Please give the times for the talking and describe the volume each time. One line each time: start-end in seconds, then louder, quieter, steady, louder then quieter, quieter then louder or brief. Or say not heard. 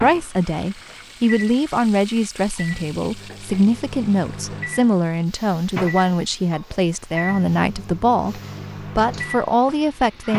0.0-10.3 steady.